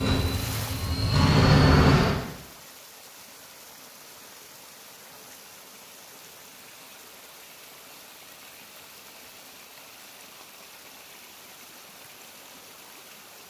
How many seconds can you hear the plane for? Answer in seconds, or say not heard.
2 s.